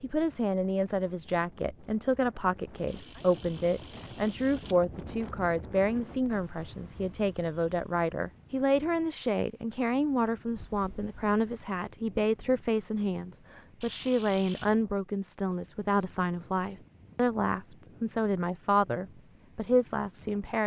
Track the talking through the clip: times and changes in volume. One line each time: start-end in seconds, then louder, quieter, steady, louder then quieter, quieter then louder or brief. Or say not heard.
0.0-20.6 steady.